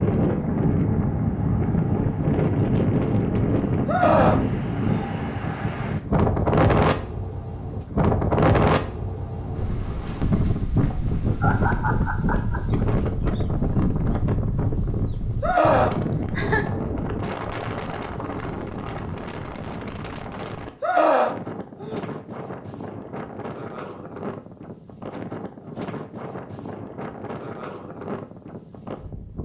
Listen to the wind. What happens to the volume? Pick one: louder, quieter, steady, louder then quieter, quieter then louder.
quieter.